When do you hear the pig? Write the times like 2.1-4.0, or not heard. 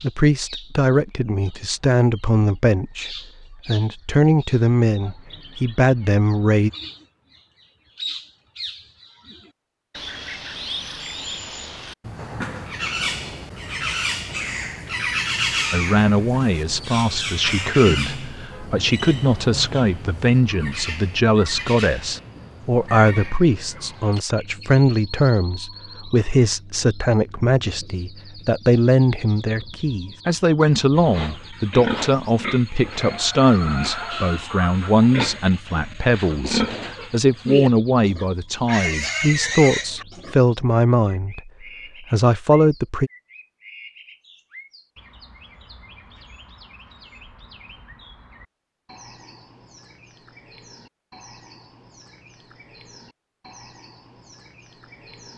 30.9-40.4.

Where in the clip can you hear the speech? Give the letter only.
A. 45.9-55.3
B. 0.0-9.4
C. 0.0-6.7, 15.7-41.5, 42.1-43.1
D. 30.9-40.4
C.